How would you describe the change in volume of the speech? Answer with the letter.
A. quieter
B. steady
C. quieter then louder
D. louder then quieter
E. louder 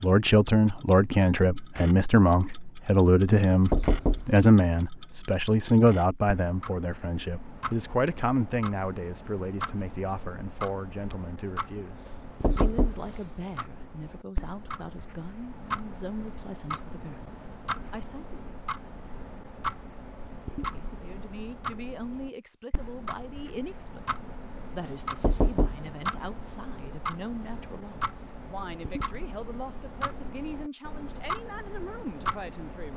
A.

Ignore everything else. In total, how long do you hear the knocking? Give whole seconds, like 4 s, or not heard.
2 s.